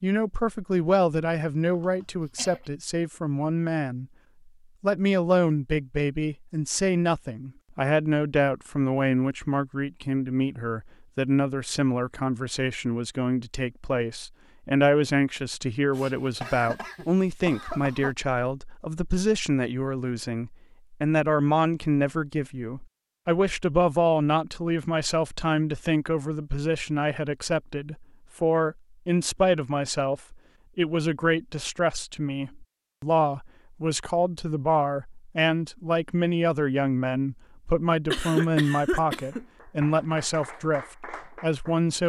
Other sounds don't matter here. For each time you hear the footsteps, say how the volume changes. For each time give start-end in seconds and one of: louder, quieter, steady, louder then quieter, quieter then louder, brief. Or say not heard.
not heard.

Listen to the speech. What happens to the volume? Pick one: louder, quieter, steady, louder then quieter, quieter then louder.
steady.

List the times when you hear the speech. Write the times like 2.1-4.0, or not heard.
0.0-4.0, 4.8-42.0.